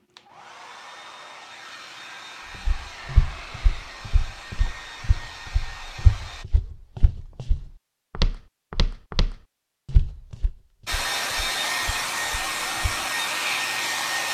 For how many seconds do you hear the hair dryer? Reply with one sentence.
The hair dryer can be heard for 10 seconds in total.